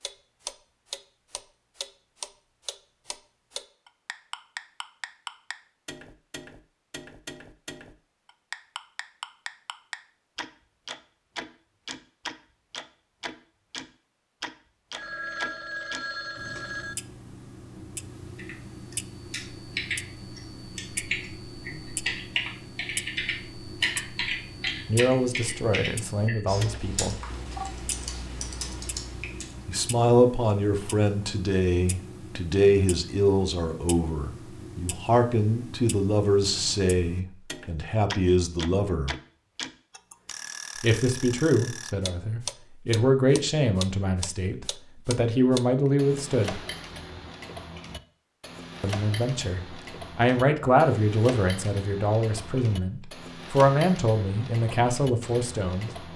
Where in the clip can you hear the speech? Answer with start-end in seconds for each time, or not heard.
24.9-27.2, 29.6-39.1, 40.8-46.6, 48.8-55.9.